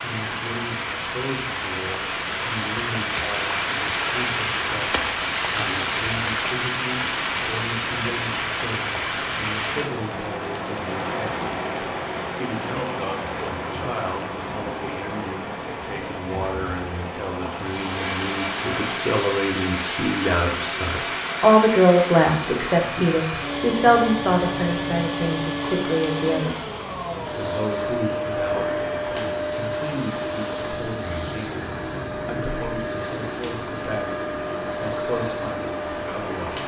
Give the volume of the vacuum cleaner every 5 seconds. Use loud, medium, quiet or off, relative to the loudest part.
loud, off, off, loud, loud, loud, loud, loud.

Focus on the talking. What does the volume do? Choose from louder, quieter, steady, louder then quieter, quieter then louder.
louder then quieter.